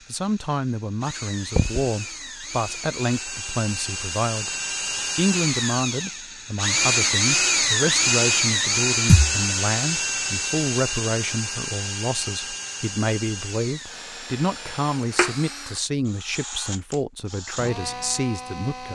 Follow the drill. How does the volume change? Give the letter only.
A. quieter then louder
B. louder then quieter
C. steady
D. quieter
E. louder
B.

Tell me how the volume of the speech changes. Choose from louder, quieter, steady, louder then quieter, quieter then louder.
steady.